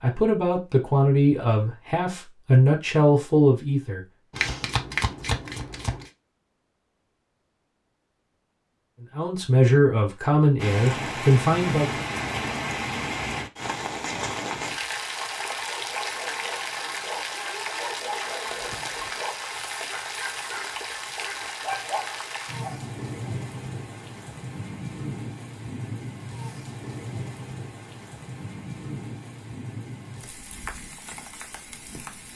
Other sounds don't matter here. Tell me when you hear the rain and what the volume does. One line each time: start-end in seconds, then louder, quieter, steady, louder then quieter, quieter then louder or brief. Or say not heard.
10.6-32.3 quieter.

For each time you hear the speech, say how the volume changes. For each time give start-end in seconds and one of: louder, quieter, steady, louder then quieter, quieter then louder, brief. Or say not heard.
0.0-4.0 quieter then louder
9.2-12.1 brief.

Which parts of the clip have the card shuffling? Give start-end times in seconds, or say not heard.
4.3-6.1, 18.4-19.2.